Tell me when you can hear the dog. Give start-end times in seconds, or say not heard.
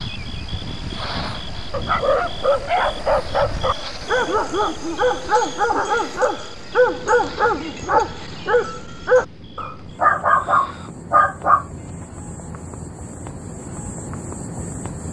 1.7-11.7.